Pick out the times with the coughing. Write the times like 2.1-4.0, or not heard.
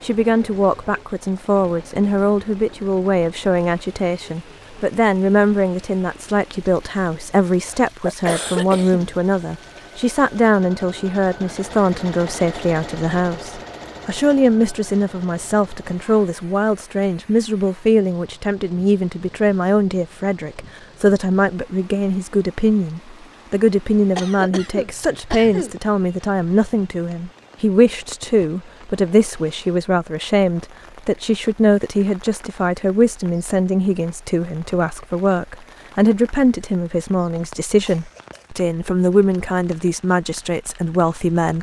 7.8-9.2, 24.1-25.8, 37.9-38.5.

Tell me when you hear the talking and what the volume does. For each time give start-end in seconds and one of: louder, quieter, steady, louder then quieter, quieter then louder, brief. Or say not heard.
0.0-41.5 steady.